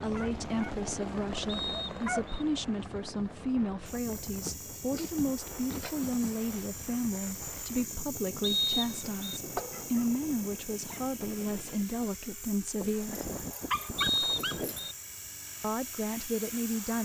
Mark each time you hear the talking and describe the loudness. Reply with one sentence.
You can hear the talking from 0.0 to 13.2 s, at a steady volume; and briefly from 15.6 to 16.9 s.